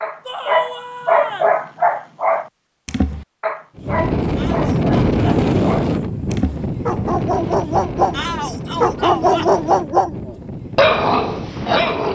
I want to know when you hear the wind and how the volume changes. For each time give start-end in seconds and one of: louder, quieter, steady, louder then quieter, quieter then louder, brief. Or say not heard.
3.8-12.1 quieter.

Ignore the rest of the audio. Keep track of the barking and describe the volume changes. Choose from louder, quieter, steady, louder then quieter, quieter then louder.
quieter then louder.